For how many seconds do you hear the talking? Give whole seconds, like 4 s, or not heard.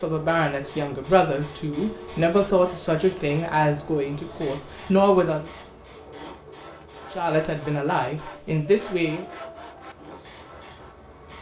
8 s.